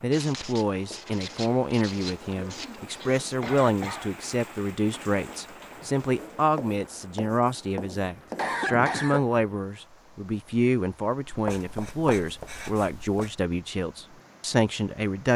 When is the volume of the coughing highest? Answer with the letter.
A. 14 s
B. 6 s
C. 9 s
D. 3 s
C.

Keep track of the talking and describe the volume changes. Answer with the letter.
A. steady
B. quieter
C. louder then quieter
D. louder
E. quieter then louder
A.